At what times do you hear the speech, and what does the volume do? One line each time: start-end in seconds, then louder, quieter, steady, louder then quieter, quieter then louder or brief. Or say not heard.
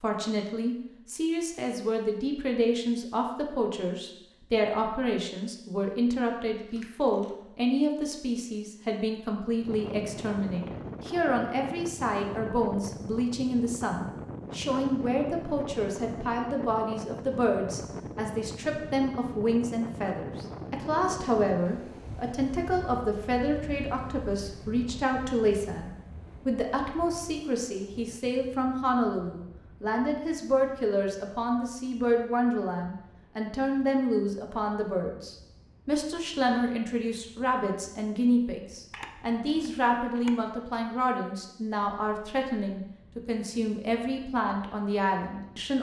0.0-45.7 steady.